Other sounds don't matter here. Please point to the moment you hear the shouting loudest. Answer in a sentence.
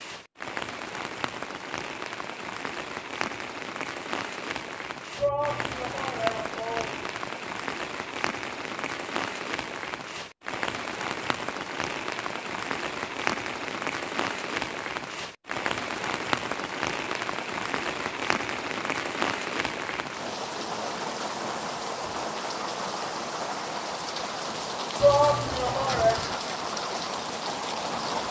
The volume of the shouting peaks at 25 seconds.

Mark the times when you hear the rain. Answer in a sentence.
You can hear the rain from 0.0 to 28.2 s.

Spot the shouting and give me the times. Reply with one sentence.
You can hear the shouting from 5.2 to 7.2 s and from 25.0 to 26.2 s.